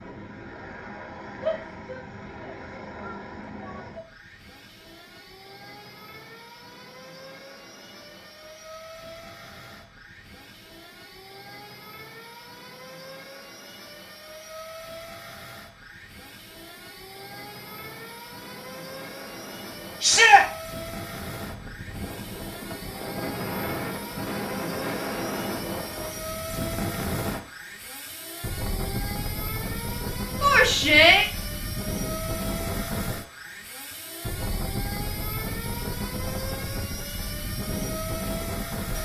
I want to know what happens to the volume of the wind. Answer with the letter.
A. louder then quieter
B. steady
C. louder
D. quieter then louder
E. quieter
C.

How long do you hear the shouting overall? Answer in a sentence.
You can hear the shouting for 4 seconds altogether.